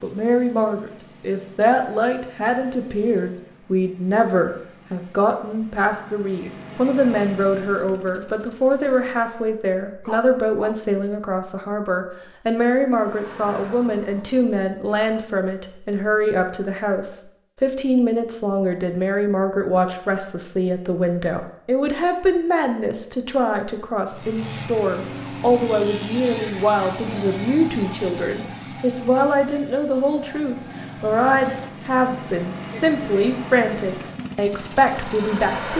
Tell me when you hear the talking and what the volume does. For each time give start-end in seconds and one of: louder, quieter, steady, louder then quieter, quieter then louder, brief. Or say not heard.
0.0-35.7 steady.